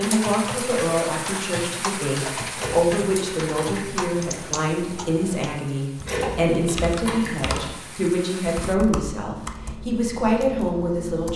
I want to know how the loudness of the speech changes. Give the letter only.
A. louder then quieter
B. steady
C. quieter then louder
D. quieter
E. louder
B.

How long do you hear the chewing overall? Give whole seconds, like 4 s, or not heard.
3 s.